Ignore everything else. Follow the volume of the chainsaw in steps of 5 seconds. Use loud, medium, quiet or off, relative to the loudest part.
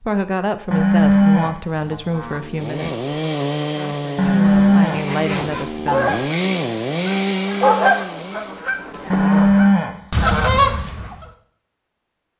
loud, loud, off.